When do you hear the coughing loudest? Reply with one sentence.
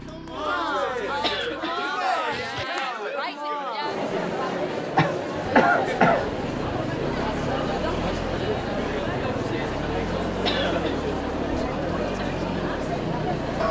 The volume of the coughing peaks at 6 seconds.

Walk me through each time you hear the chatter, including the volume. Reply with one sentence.
You can hear the chatter from 0.1 to 13.6 s, at a steady volume.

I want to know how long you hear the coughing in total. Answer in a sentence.
The coughing can be heard for 3 seconds in total.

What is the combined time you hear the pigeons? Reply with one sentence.
You can't hear the pigeons here.